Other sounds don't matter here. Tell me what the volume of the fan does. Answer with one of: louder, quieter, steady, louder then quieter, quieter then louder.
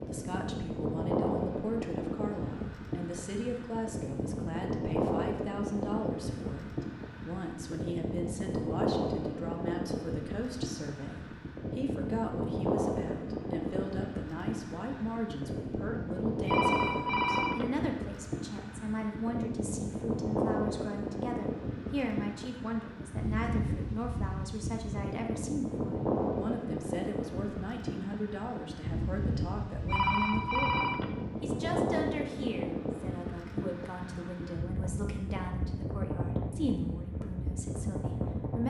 steady.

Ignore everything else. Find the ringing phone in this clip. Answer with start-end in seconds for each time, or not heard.
16.4-17.6, 29.9-31.1.